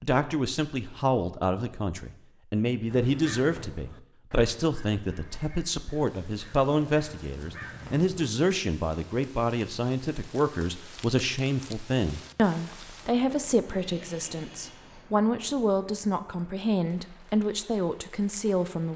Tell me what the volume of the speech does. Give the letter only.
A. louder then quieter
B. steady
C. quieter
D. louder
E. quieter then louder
B.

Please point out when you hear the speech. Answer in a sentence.
You can hear the speech from 0.0 to 18.9 s.